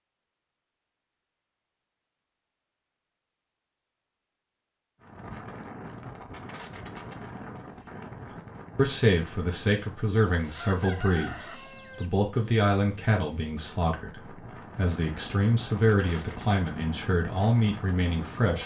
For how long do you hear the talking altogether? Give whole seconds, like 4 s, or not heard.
10 s.